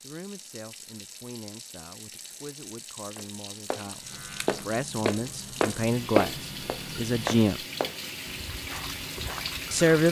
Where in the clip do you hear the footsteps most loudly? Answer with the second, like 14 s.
6 s.